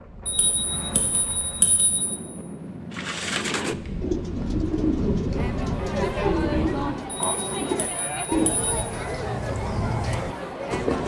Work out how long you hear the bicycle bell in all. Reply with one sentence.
You can hear the bicycle bell for 4 seconds altogether.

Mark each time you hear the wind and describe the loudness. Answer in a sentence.
The wind can be heard from 0.0 to 7.0 s, getting louder.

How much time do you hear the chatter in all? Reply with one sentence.
You can hear the chatter for 6 seconds altogether.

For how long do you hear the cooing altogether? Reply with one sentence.
You can hear the cooing for 8 seconds altogether.